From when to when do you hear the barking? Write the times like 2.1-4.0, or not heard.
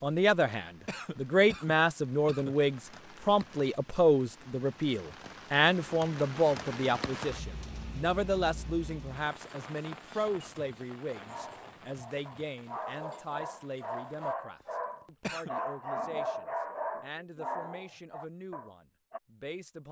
11.2-19.2.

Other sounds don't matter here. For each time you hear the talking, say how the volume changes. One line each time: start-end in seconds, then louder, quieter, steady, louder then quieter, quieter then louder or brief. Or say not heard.
0.0-19.8 quieter.